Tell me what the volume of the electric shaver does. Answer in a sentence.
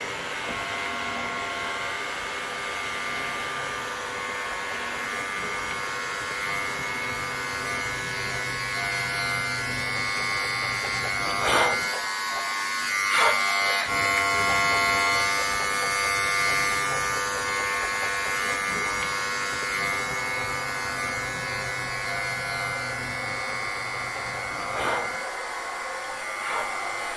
The volume of the electric shaver goes up, then down.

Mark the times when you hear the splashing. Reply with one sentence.
You can't hear the splashing here.